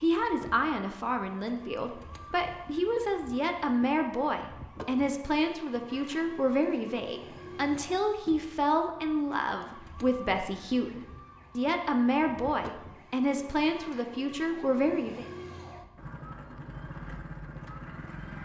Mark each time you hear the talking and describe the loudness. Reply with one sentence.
You can hear the talking from 0.0 to 15.2 s, at a steady volume.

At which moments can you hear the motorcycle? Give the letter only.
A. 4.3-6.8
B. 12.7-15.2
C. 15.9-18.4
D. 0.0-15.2
C.